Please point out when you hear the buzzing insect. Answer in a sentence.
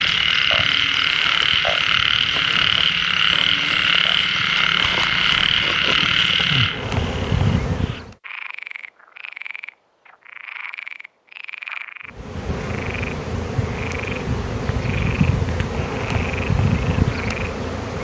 You can hear the buzzing insect from 0.0 to 8.2 s and from 12.1 to 17.9 s.